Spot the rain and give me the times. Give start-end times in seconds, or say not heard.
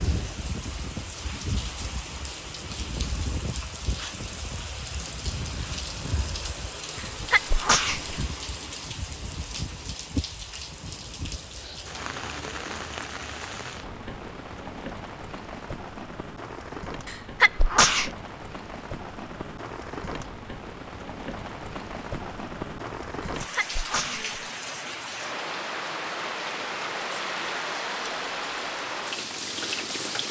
0.0-30.2.